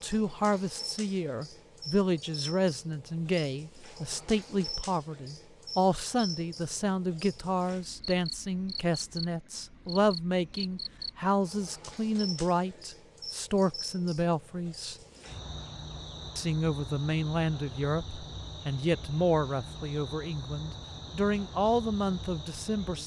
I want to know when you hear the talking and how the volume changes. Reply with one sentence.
You can hear the talking from 0.0 to 14.9 s, at a steady volume; and from 16.4 to 23.0 s, at a steady volume.